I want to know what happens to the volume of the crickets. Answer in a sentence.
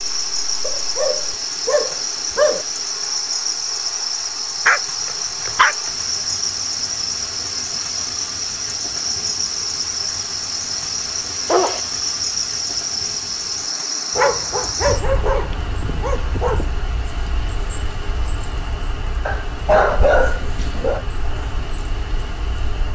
The loudness of the crickets goes down.